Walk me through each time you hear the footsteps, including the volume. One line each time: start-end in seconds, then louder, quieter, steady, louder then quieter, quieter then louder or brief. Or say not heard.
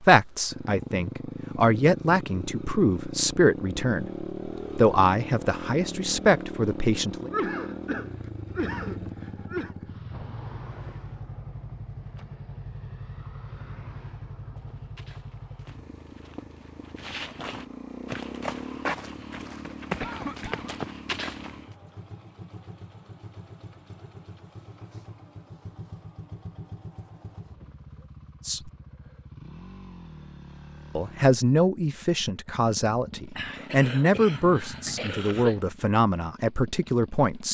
14.6-21.7 louder.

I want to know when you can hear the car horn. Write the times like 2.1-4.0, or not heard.
not heard.